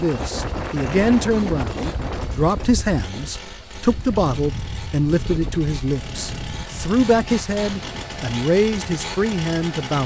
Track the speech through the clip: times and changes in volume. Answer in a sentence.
You can hear the speech from 0.0 to 10.0 s, at a steady volume.